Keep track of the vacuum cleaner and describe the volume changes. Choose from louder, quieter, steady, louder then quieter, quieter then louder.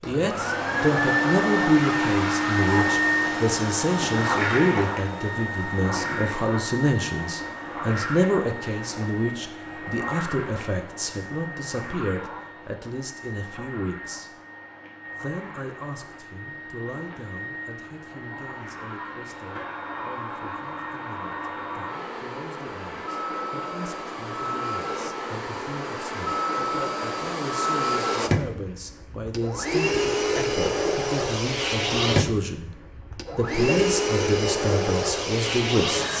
quieter then louder.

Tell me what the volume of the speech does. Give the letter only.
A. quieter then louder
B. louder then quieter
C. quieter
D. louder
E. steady
A.